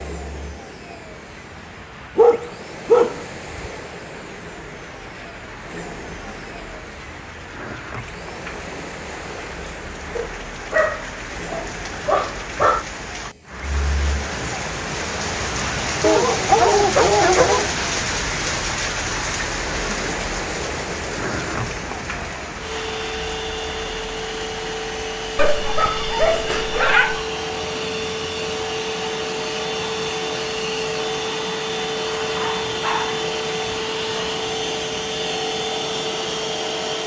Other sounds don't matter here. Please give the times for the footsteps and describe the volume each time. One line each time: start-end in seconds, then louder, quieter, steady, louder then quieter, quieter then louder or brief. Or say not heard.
not heard.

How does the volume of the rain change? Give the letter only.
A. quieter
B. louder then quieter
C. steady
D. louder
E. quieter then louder
B.